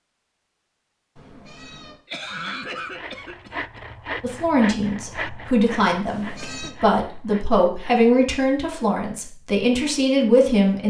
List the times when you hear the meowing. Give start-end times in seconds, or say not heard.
1.1-2.0, 6.0-6.8.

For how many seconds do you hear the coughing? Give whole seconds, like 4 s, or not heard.
3 s.